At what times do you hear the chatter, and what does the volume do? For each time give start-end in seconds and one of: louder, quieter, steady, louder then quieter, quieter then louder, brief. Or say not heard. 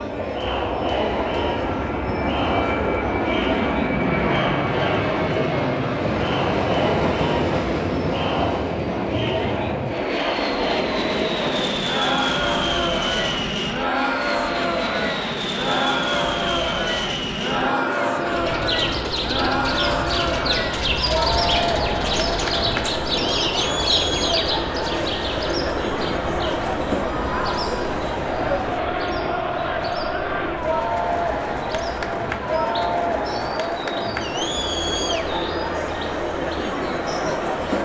0.0-37.8 steady.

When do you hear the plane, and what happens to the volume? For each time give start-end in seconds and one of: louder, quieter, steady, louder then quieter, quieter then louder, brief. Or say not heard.
0.0-37.8 quieter.